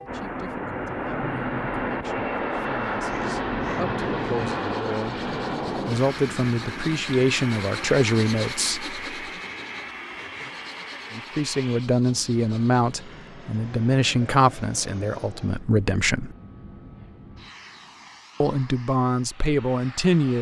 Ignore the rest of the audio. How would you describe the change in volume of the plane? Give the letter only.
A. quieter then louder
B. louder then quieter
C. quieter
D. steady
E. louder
C.